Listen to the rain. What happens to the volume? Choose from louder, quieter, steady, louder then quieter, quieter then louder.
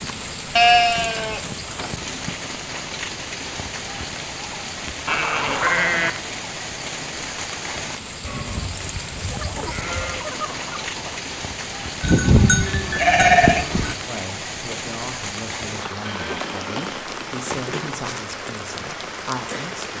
steady.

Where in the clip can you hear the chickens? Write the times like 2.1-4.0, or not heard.
9.2-11.2.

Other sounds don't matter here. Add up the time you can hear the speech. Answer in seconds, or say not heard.
6 s.